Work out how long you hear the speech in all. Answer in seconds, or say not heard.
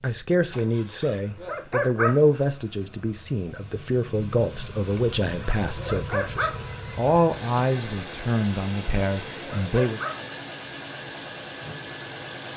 10 s.